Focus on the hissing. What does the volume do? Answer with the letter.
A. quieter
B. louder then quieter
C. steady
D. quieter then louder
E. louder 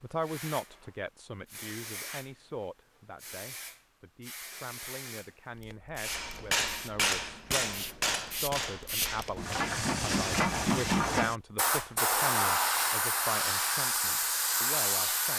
E.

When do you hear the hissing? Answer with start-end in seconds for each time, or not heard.
0.0-15.3.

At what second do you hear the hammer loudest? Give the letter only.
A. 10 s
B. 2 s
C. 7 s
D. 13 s
C.